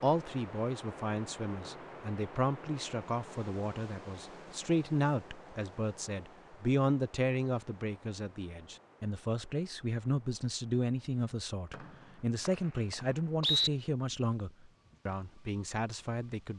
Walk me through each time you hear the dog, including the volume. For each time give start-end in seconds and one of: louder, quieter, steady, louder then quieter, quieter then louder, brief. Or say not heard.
not heard.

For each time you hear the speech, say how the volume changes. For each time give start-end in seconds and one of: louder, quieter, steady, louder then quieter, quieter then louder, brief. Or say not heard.
0.0-16.5 steady.